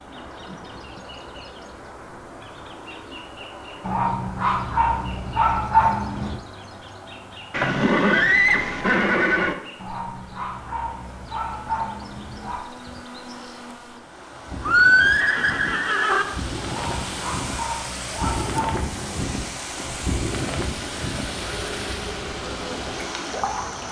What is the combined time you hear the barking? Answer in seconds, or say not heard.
8 s.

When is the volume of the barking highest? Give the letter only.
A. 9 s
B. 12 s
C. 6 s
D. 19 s
C.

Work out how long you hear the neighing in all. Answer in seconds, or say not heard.
4 s.